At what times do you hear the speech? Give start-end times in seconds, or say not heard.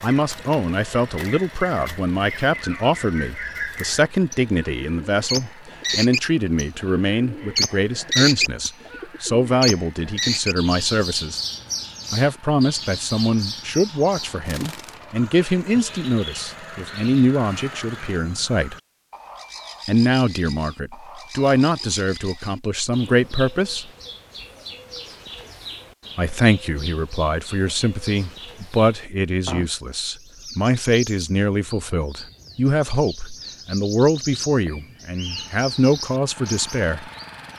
0.0-11.4, 12.1-18.8, 19.9-23.9, 26.1-37.0.